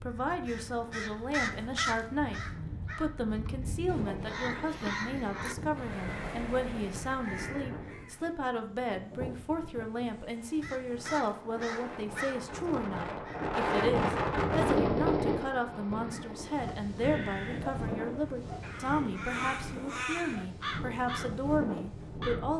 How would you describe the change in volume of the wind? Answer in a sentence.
The volume of the wind goes up, then down.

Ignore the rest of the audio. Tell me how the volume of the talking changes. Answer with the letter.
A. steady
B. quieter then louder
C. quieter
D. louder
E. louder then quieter
A.